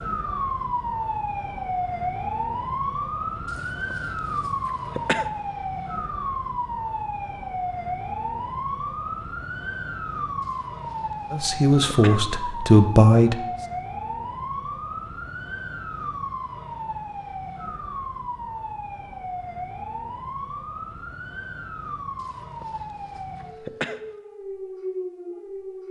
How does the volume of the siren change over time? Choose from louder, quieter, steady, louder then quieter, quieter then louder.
quieter.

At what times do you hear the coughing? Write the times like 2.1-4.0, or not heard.
3.5-5.3, 10.4-12.2, 22.1-24.0.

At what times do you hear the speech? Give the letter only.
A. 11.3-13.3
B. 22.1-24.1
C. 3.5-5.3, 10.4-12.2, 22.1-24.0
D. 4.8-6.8
A.